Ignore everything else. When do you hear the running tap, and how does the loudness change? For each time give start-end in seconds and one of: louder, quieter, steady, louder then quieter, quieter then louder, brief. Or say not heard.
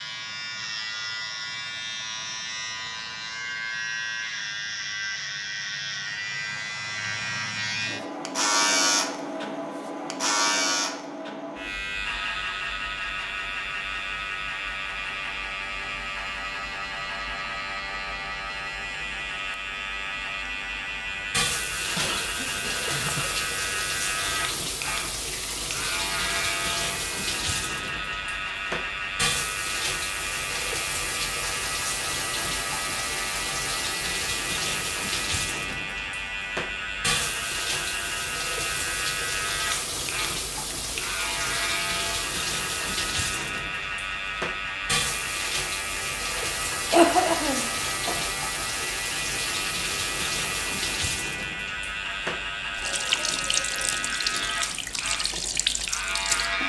21.1-56.6 steady.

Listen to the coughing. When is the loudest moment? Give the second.
47 s.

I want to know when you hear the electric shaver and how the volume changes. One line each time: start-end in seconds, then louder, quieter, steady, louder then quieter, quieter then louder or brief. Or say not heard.
0.0-56.6 steady.